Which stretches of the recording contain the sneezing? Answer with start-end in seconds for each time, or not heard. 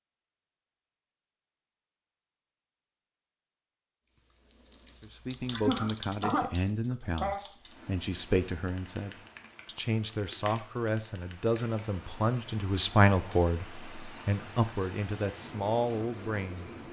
5.5-7.4.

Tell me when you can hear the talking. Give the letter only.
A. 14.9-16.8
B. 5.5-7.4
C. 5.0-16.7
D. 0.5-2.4
C.